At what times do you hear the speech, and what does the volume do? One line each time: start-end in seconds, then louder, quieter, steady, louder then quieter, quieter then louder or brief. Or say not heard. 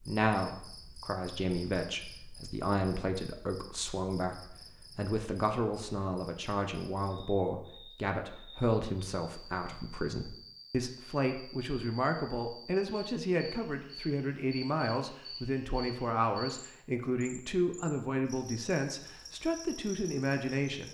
0.0-20.8 steady.